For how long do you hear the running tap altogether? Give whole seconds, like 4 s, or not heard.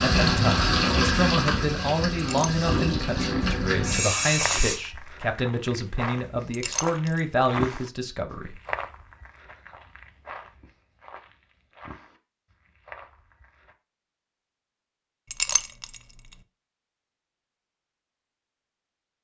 5 s.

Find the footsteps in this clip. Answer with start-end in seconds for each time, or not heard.
4.3-13.8.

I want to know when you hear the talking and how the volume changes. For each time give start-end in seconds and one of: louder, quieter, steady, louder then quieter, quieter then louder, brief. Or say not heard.
0.0-8.6 steady.